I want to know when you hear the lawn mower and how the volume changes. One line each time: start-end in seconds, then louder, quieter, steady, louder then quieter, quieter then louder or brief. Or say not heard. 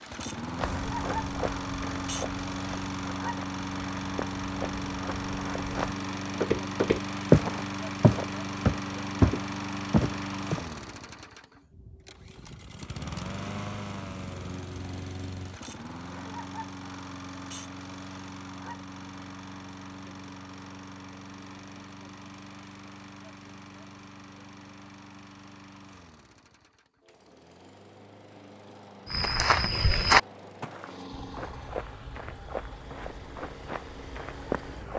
0.0-34.9 quieter.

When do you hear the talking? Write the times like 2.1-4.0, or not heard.
not heard.